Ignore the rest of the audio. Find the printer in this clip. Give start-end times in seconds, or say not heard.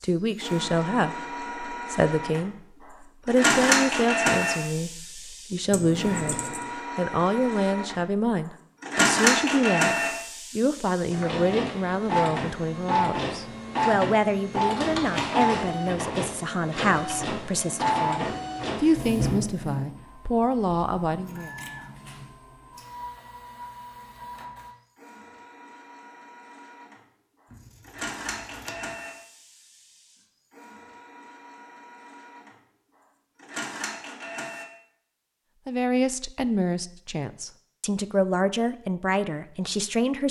0.4-34.6.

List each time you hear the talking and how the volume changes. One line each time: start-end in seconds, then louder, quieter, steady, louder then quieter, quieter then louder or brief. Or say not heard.
0.0-21.5 steady
35.6-40.2 quieter then louder.